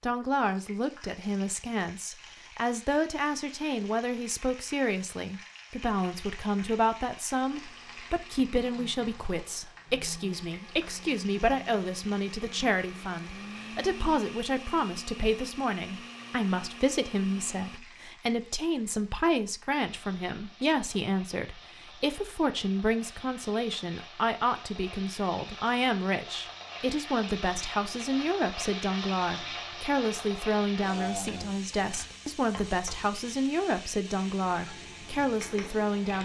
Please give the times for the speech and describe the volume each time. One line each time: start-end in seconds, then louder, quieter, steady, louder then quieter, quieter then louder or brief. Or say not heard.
0.0-36.1 steady.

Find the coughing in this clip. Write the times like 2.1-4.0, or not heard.
not heard.